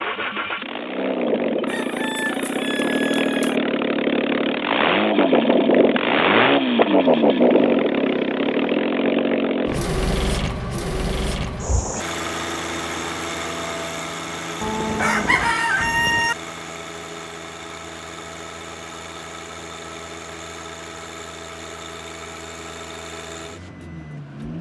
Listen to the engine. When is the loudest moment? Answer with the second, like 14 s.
7 s.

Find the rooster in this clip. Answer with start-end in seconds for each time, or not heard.
1.6-3.6, 14.9-16.4.